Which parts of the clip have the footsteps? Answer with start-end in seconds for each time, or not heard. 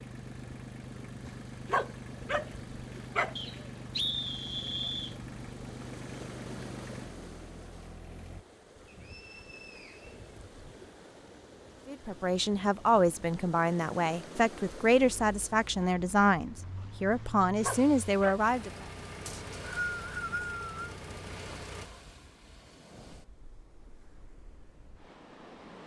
not heard.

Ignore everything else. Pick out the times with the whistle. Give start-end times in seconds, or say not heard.
3.4-5.2, 8.8-10.2, 19.2-20.9.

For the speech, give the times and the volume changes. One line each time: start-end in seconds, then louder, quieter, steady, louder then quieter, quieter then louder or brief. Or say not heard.
11.8-18.7 steady.